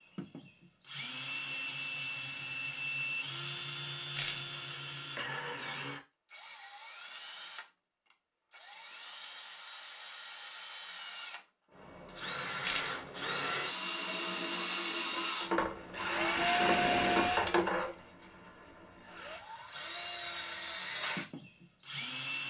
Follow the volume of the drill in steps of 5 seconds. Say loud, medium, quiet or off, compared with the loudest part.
medium, medium, medium, loud, medium.